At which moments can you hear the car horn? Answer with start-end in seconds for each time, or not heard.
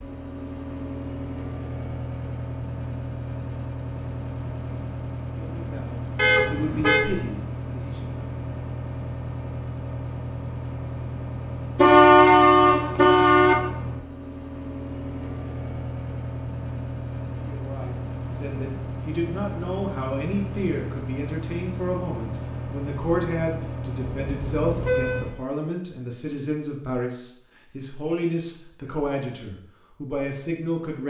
6.2-7.0, 11.8-13.6, 24.2-25.2.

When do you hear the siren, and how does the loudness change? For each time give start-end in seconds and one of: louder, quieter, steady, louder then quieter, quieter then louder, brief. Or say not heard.
not heard.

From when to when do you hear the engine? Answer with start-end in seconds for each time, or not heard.
0.0-25.4.